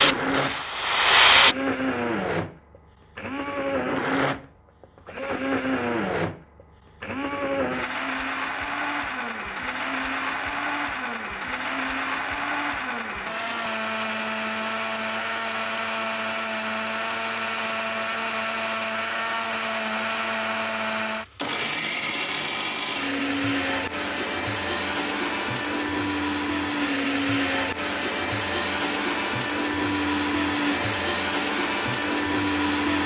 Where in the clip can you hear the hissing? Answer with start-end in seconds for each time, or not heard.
0.0-1.6.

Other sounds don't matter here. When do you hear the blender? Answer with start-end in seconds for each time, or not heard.
0.0-33.0.